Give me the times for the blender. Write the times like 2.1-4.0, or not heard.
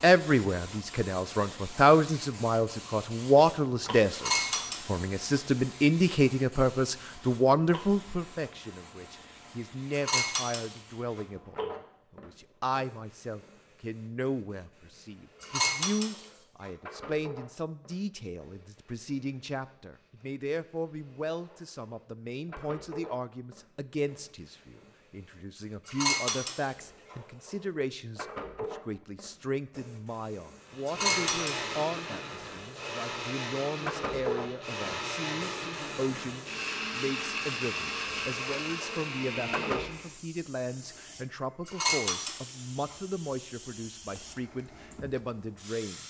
30.6-40.1.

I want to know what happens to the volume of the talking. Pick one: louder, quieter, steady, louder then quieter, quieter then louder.
quieter.